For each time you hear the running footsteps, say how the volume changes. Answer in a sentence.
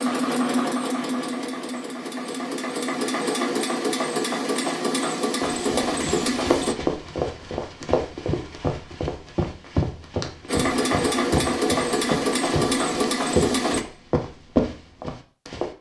You can hear the running footsteps from 5.4 to 15.7 s, at a steady volume.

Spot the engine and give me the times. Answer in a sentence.
The engine can be heard from 0.0 to 6.8 s and from 10.4 to 13.8 s.